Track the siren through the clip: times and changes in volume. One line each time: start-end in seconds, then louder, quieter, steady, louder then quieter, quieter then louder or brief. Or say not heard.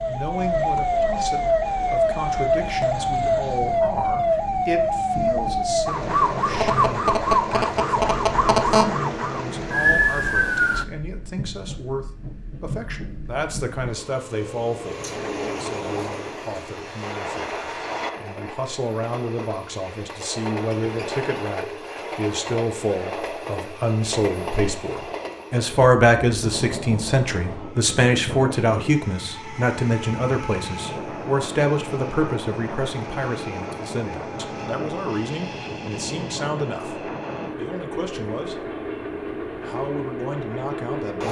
0.0-10.8 steady.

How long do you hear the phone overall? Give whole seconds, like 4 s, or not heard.
2 s.